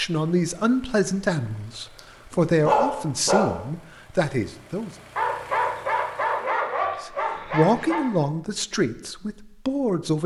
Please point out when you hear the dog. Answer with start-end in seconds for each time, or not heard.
1.9-3.5, 5.2-8.0.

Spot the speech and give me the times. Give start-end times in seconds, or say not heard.
0.0-4.9, 7.0-10.2.